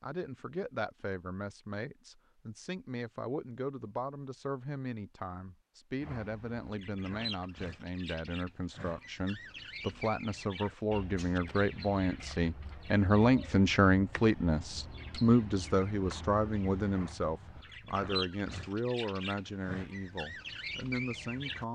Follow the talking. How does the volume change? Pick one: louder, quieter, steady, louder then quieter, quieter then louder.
louder then quieter.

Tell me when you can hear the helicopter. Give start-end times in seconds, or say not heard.
not heard.